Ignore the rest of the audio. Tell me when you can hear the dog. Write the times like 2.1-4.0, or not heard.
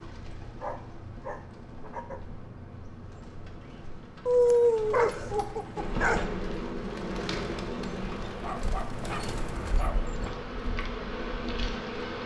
0.6-2.2, 4.2-6.2, 8.3-10.3.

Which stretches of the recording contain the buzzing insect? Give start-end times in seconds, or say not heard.
5.8-12.2.